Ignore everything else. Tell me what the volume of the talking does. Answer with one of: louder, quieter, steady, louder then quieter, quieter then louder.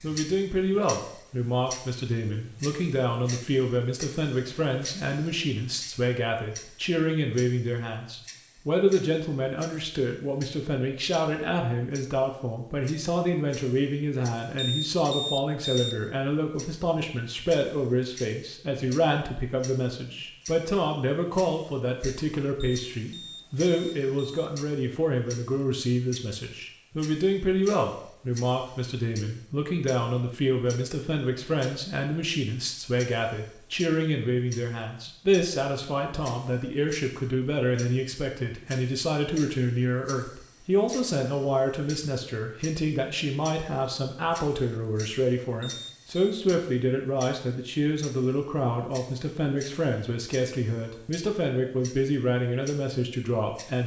steady.